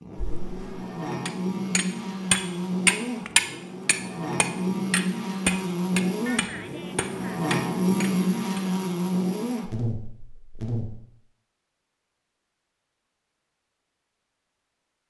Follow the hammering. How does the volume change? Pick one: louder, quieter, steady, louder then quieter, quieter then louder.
quieter.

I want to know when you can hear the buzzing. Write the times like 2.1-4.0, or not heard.
0.0-11.0.